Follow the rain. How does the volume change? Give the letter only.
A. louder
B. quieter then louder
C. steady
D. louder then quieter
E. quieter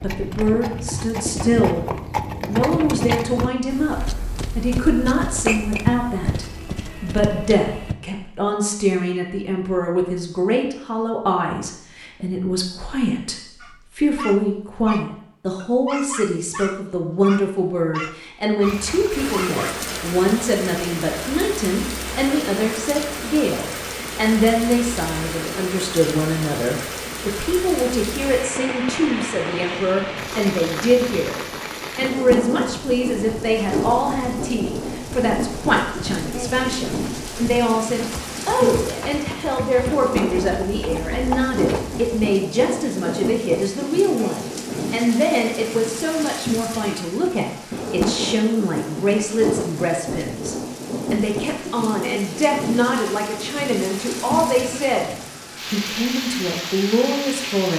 C.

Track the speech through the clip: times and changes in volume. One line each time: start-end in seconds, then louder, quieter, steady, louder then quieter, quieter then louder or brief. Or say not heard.
0.0-1.9 brief
2.5-55.1 steady
55.7-57.7 brief.